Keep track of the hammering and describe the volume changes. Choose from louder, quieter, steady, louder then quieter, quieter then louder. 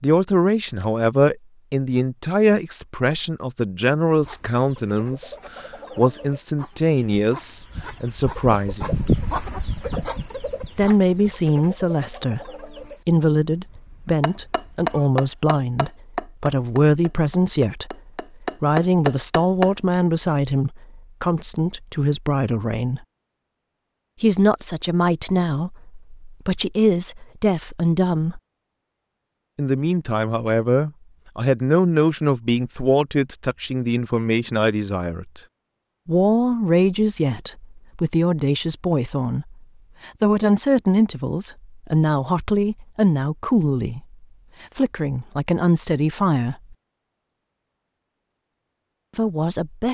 quieter then louder.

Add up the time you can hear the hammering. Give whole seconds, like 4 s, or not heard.
6 s.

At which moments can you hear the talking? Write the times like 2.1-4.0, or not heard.
0.0-9.1, 10.8-23.0, 24.2-28.4, 29.6-35.4, 36.0-46.8, 49.1-49.8.